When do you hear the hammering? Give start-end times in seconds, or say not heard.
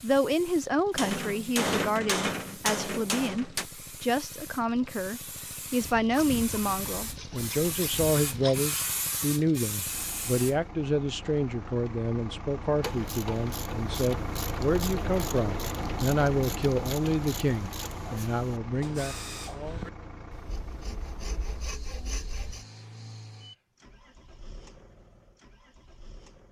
0.9-3.6.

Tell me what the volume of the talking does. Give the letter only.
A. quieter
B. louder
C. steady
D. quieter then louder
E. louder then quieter
C.